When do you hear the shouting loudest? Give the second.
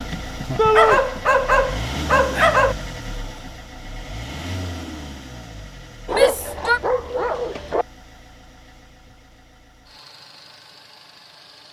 1 s.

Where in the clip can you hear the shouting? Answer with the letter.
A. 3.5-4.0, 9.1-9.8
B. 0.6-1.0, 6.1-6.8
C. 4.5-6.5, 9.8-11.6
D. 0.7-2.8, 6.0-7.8
B.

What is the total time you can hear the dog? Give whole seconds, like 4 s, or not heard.
4 s.